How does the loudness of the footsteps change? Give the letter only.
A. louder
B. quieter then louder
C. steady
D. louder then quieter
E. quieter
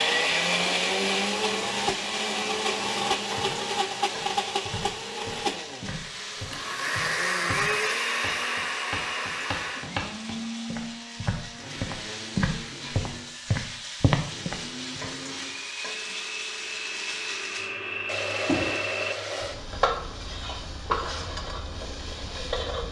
A.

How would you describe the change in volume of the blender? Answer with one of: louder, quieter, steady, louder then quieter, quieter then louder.
quieter then louder.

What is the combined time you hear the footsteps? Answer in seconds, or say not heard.
12 s.